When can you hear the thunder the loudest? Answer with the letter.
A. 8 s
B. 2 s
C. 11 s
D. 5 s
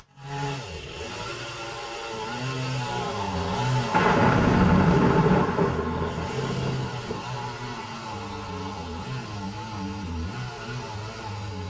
D.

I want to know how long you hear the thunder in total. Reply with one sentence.
The thunder can be heard for 3 seconds in total.